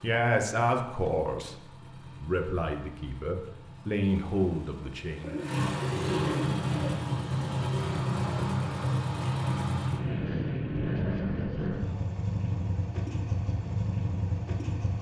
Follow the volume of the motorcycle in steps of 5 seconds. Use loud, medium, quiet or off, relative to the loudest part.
quiet, loud, loud.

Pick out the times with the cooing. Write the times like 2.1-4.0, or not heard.
5.2-7.0.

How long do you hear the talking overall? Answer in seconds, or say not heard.
5 s.